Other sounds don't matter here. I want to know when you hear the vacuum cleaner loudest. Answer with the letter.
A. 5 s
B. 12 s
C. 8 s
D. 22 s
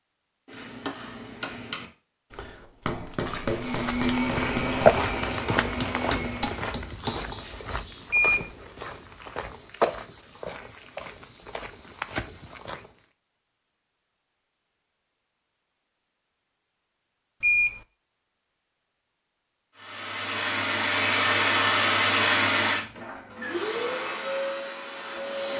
D.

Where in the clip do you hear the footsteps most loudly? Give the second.
5 s.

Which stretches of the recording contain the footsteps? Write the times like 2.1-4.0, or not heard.
3.0-13.1.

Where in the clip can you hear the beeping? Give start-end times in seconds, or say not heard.
8.1-8.5, 17.4-17.8.